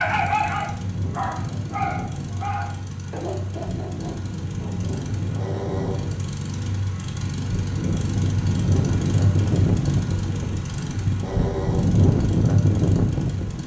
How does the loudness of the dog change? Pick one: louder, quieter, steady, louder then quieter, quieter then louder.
quieter.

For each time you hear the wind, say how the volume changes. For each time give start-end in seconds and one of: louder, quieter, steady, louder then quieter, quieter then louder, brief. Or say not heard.
0.0-13.6 louder.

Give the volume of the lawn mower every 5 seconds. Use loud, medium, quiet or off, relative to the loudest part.
medium, loud, loud.